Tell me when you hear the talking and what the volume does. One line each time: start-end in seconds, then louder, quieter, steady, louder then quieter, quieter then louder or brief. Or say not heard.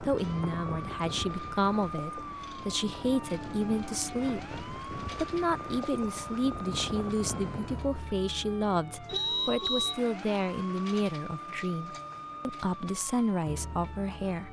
0.0-14.4 steady.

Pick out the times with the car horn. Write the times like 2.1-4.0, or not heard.
9.1-10.0.